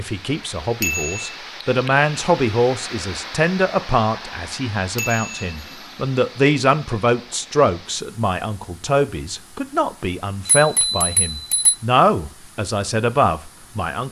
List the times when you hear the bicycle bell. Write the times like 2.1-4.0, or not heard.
0.8-1.4, 5.0-5.6, 10.4-11.8.